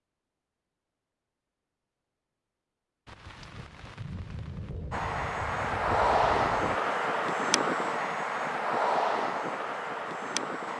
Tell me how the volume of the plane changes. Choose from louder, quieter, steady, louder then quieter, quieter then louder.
quieter.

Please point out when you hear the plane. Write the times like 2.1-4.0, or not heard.
4.9-10.7.